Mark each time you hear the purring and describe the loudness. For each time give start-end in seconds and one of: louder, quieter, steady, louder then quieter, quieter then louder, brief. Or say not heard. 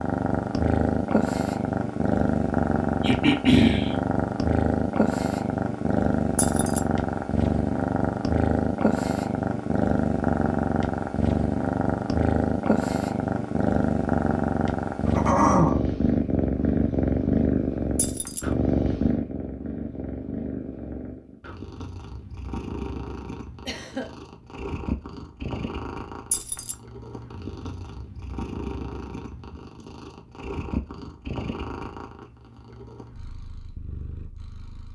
0.0-34.9 quieter.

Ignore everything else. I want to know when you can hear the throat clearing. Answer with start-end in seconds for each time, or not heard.
3.0-4.0, 15.1-15.8, 23.6-24.1.